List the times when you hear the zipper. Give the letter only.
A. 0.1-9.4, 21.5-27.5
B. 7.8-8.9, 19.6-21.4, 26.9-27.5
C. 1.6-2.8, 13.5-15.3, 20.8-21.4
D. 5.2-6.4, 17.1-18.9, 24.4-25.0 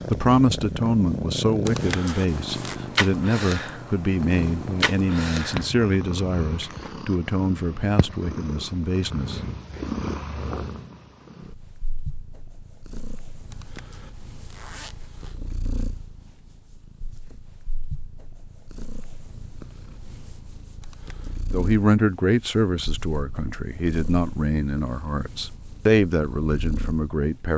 C.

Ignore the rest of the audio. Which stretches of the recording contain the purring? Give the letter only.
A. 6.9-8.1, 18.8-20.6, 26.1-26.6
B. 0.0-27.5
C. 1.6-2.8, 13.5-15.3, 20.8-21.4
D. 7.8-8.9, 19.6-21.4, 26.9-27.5
B.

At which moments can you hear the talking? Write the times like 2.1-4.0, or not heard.
0.1-9.4, 21.5-27.5.